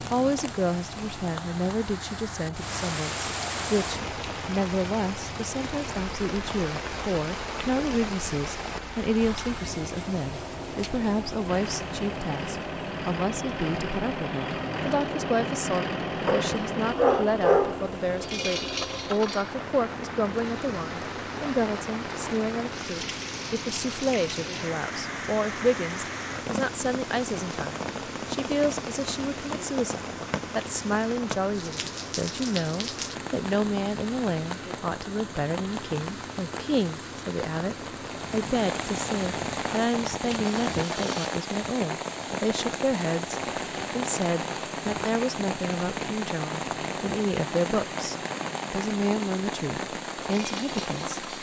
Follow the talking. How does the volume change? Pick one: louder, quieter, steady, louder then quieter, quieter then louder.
steady.